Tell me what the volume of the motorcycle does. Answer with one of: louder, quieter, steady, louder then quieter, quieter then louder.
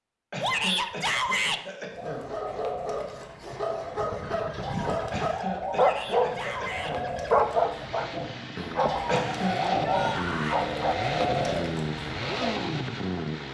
louder.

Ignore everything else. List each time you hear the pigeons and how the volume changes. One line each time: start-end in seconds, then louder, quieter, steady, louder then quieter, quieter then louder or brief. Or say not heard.
1.9-12.6 louder.